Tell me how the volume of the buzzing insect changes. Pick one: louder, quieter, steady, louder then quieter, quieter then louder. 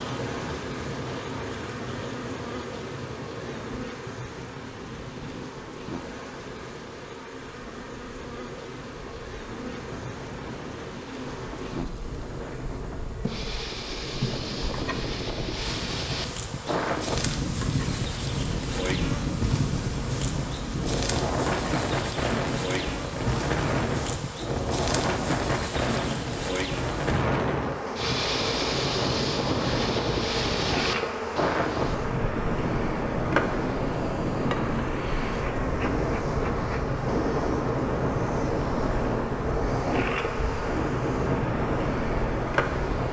louder.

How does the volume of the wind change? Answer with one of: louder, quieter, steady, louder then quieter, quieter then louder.
louder.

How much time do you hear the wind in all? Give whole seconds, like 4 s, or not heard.
43 s.